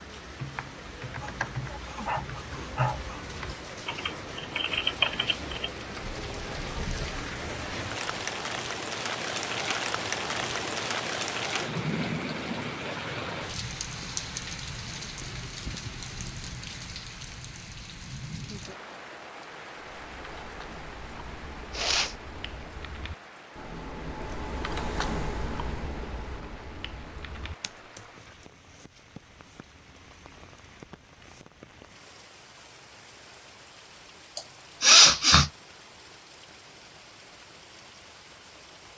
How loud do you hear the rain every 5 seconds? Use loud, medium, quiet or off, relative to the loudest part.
medium, loud, loud, medium, quiet, quiet, quiet, quiet.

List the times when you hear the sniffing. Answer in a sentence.
You can hear the sniffing from 1.2 to 3.1 s, from 21.7 to 22.1 s and from 34.4 to 35.5 s.